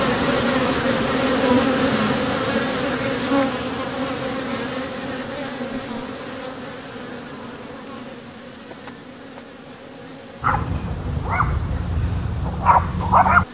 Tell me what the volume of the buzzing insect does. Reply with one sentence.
The volume of the buzzing insect goes down.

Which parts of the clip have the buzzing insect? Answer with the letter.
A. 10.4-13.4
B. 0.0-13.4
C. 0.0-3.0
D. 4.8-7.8
B.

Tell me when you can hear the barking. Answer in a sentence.
The barking can be heard from 10.4 to 13.4 s.